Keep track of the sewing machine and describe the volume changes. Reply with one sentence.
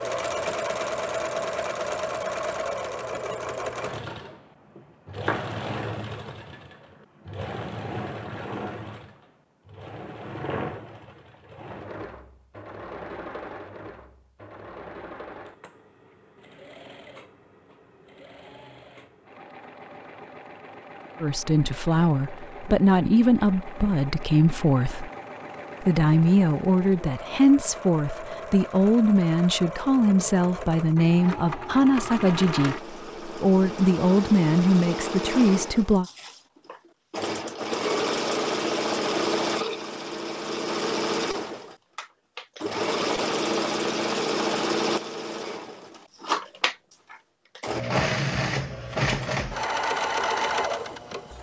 The loudness of the sewing machine goes down, then up.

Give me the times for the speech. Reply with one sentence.
The speech can be heard from 21.2 to 25.1 s and from 25.8 to 36.0 s.